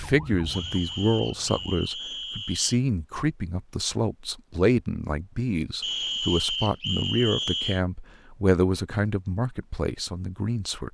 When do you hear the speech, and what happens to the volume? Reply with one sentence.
You can hear the speech from 0.0 to 10.8 s, at a steady volume.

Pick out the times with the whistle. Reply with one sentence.
The whistle can be heard from 0.5 to 2.8 s and from 5.8 to 7.8 s.